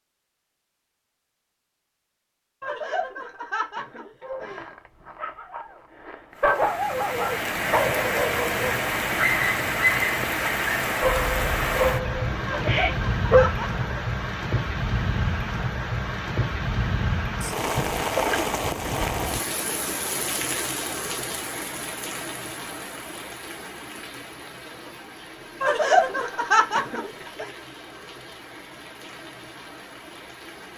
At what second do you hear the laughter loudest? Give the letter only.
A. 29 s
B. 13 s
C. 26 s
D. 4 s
C.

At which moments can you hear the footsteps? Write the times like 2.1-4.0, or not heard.
not heard.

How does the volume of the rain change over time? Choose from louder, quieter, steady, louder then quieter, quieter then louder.
quieter.